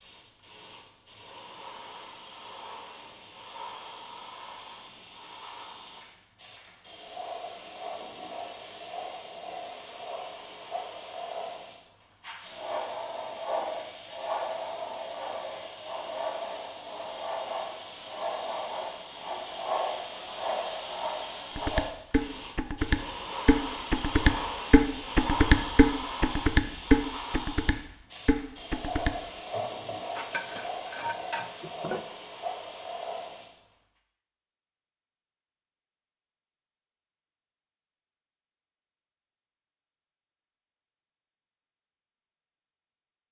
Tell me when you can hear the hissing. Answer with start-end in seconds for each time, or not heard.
0.0-33.5.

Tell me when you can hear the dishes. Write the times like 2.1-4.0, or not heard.
21.6-32.0.